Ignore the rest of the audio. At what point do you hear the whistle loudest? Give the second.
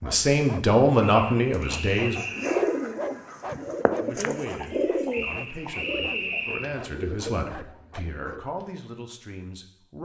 6 s.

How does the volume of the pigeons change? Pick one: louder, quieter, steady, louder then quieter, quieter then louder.
quieter.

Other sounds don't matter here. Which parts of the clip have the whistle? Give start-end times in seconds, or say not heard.
1.0-2.6, 5.1-6.7.